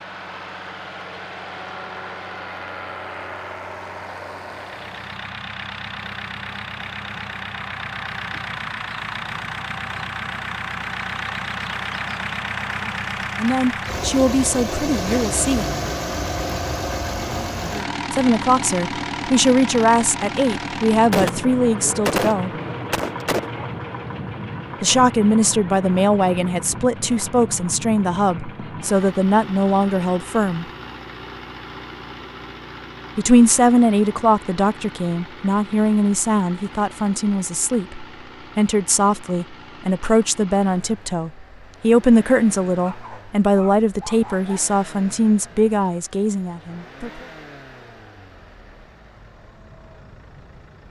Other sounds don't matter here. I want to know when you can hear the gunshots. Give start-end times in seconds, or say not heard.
21.1-23.6.